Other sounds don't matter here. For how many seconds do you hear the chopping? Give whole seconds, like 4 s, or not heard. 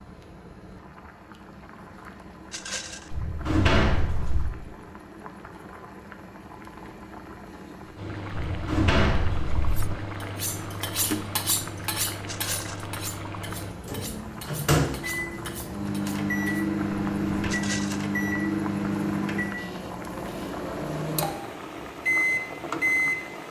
not heard.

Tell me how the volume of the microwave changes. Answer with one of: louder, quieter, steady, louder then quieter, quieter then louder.
louder.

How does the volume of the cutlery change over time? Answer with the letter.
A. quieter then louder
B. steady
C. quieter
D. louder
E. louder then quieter
C.